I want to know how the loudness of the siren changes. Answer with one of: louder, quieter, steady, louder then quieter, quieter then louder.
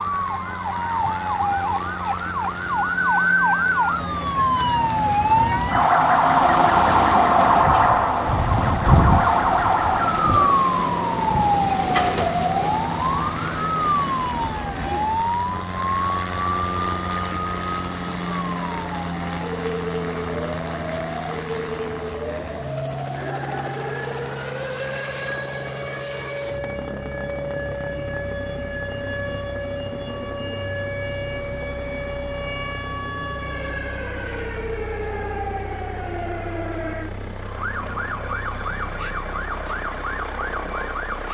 quieter.